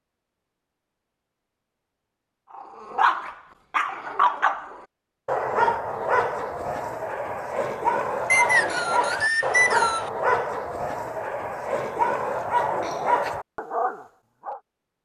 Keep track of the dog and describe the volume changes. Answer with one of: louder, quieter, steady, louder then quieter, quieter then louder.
steady.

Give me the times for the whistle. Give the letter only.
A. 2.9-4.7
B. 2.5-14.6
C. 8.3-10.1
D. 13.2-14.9
C.